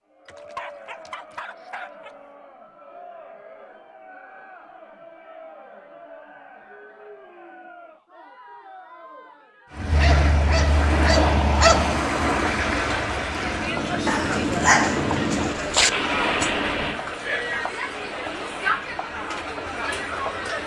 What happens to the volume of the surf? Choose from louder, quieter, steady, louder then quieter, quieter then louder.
quieter.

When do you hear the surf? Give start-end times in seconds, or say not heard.
9.7-20.6.